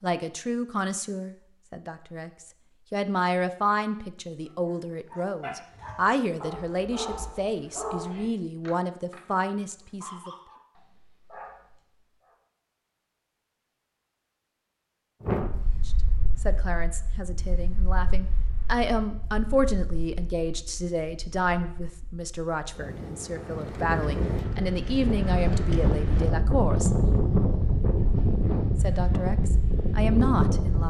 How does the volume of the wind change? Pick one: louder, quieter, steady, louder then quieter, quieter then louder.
quieter then louder.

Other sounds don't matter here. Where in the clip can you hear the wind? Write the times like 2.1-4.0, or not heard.
15.2-30.8.